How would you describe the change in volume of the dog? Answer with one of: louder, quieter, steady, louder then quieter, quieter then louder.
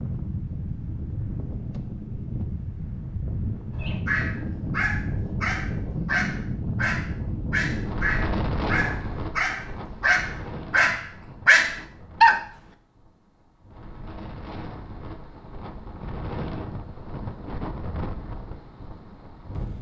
louder.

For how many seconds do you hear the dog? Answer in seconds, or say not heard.
9 s.